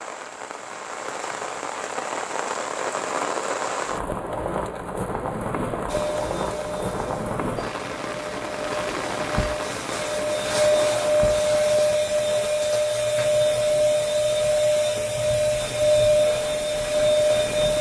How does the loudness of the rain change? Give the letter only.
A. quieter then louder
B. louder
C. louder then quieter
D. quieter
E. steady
D.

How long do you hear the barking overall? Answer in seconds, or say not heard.
not heard.